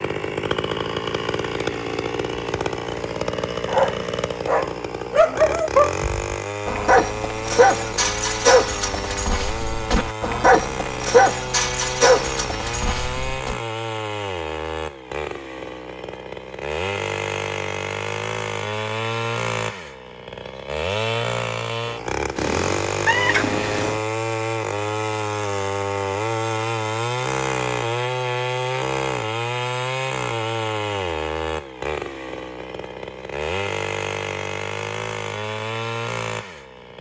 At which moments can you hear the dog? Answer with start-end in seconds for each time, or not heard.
3.6-13.6.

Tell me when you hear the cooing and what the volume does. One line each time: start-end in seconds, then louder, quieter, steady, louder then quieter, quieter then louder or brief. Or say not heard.
not heard.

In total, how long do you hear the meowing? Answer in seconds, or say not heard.
2 s.